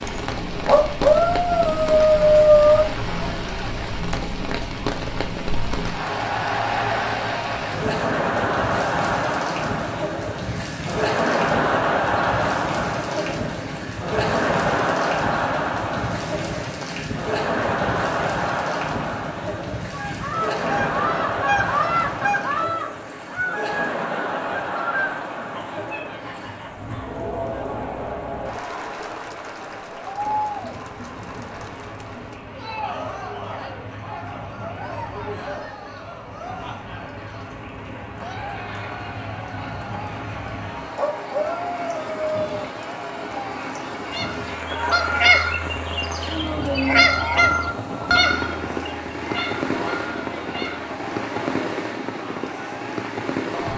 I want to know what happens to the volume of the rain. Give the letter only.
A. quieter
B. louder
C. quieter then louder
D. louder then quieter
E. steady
C.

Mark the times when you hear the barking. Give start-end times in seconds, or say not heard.
0.7-2.9, 41.0-42.4.